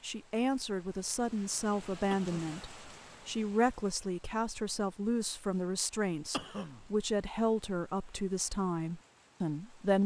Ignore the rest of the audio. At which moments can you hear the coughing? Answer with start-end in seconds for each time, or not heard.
2.1-2.5, 6.3-6.8.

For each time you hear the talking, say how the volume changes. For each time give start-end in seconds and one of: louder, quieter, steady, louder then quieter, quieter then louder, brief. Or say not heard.
0.0-10.0 steady.